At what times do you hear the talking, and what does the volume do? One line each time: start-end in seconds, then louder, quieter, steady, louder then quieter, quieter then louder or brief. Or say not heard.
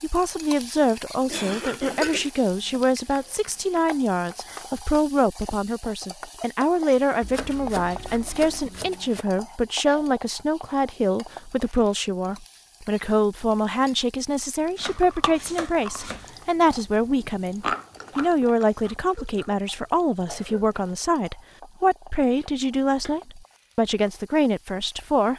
0.0-25.3 steady.